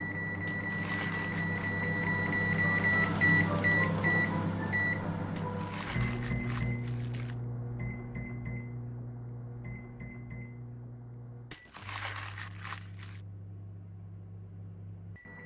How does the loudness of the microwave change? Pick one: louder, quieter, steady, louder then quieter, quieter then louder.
quieter.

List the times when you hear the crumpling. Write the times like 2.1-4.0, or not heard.
0.5-1.8, 5.3-7.3, 11.5-13.2.